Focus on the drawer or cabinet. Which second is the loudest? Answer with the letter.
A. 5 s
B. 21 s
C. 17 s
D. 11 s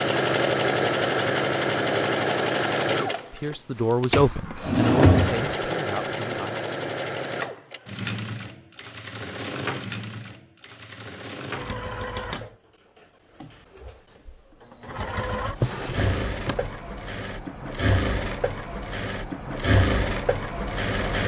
A.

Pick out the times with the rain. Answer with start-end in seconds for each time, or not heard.
not heard.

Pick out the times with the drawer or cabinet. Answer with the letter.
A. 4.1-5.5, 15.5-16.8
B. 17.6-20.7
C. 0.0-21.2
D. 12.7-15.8
A.